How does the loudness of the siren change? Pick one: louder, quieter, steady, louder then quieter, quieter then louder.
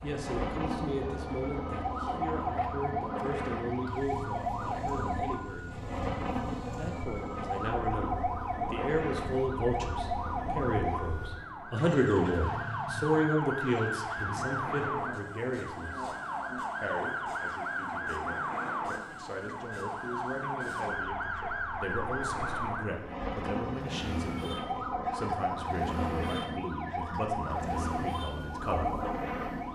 steady.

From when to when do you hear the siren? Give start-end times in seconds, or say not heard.
0.0-29.7.